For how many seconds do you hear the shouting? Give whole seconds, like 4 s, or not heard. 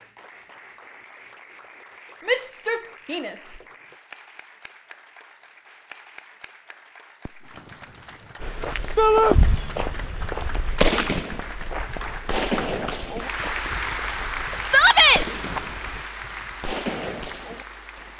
2 s.